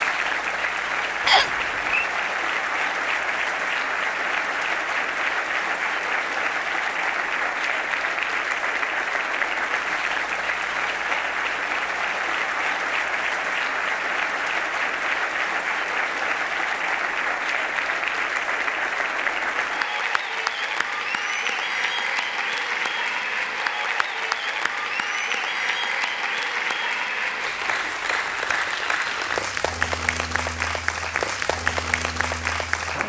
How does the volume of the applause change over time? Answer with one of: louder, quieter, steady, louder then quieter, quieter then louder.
steady.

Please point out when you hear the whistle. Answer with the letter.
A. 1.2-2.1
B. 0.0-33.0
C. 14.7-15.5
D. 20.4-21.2
A.